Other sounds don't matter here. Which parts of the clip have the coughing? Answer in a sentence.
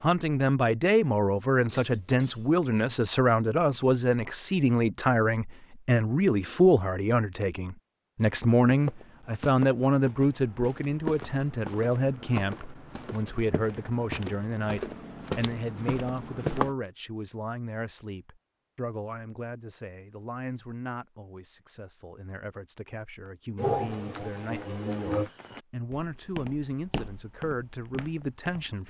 The coughing can be heard from 1.7 to 2.5 s and from 23.6 to 25.3 s.